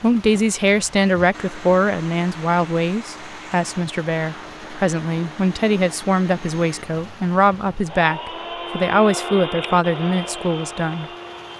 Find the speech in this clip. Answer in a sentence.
You can hear the speech from 0.0 to 11.1 s.